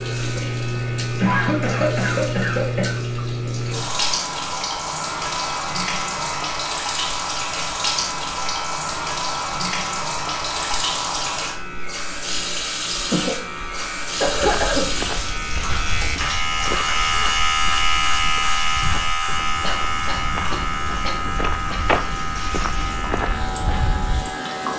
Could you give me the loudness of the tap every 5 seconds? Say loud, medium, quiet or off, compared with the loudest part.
loud, loud, loud, medium, medium.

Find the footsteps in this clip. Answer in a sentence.
The footsteps can be heard from 14.2 to 24.4 s.